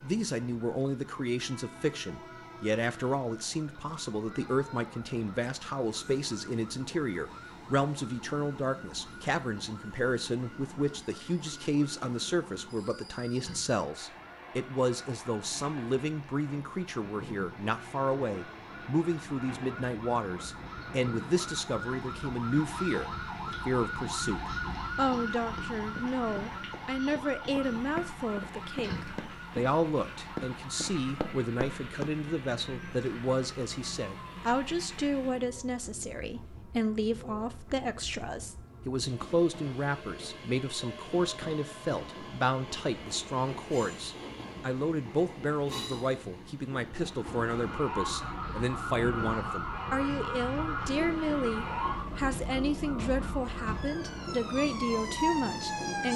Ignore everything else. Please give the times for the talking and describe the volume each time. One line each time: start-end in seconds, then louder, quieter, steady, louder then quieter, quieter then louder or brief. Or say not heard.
0.0-56.1 steady.